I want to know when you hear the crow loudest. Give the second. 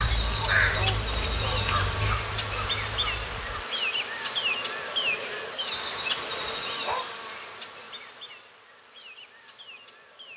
1 s.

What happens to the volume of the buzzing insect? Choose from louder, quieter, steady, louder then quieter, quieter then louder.
quieter.